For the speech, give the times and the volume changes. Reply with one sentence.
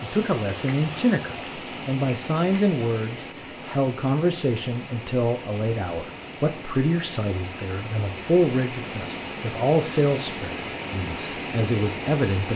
You can hear the speech from 0.0 to 12.5 s, at a steady volume.